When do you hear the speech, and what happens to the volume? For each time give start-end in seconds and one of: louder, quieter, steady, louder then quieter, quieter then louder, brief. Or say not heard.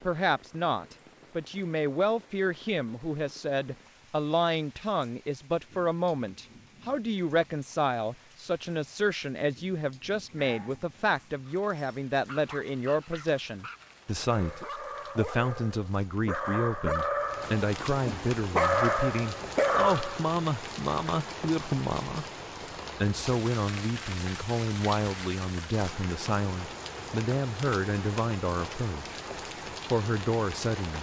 0.0-22.2 steady
23.0-29.2 steady
29.9-30.9 brief.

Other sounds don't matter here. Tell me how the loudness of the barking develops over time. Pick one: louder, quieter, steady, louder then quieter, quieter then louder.
louder.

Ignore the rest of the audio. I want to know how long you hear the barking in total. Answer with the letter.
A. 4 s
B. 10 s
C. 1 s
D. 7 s
B.